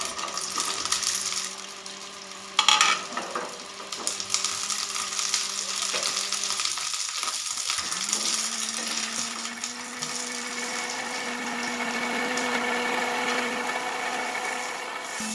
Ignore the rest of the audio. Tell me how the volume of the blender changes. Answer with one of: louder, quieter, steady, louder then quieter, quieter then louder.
louder.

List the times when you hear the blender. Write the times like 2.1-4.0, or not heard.
0.0-15.2.